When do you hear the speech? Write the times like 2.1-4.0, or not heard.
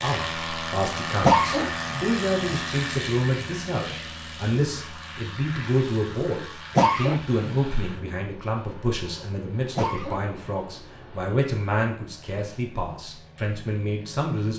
0.0-14.5.